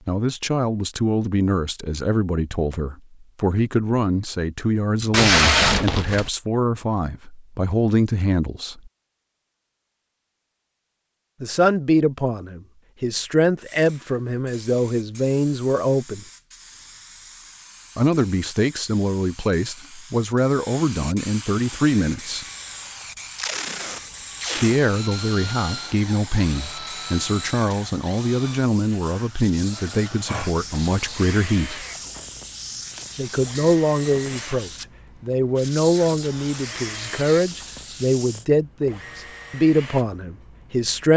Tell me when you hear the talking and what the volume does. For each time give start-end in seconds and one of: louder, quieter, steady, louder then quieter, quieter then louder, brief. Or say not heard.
0.1-8.9 steady
11.4-16.2 steady
17.9-22.4 steady
24.6-31.9 steady
33.1-41.1 steady.